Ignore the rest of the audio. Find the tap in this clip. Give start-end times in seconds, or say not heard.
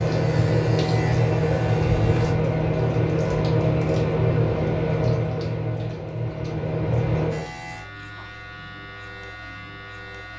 0.0-7.5.